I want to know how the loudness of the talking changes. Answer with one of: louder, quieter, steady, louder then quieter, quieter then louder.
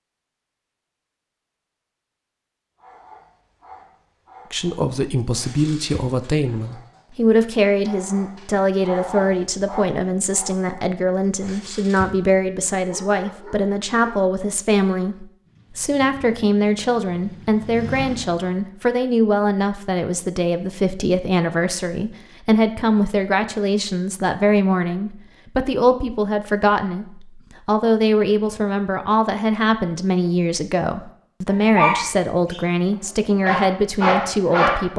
steady.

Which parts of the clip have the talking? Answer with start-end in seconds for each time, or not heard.
4.5-34.9.